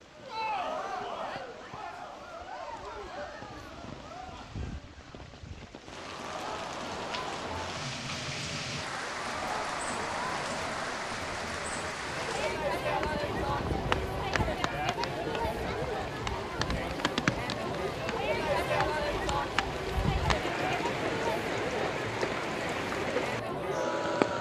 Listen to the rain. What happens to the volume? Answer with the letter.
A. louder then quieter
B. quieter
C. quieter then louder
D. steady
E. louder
E.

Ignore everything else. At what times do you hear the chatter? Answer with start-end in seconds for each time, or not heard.
0.0-24.3.